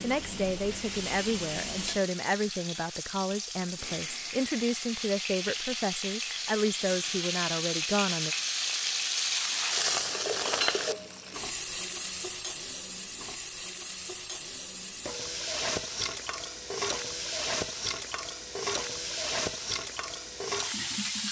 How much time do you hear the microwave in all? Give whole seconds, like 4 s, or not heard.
not heard.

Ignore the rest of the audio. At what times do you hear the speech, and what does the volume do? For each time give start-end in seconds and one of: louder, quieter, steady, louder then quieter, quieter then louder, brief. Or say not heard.
0.0-8.3 steady.